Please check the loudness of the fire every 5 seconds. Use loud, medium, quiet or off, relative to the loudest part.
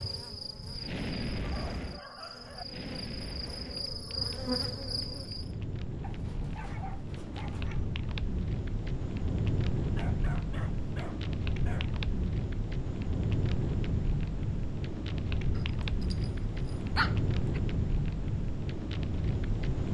medium, loud, loud, loud.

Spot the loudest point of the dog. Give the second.
17 s.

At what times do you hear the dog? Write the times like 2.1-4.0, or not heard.
1.4-2.6, 6.0-7.8, 9.9-11.9, 15.6-17.6.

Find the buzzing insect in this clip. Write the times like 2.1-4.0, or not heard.
0.0-5.5.